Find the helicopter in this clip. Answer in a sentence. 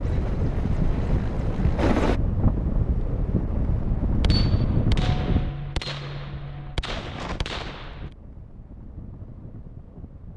You can hear the helicopter from 0.0 to 2.2 s.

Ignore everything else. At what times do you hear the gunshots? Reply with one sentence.
You can hear the gunshots from 4.2 to 8.1 s.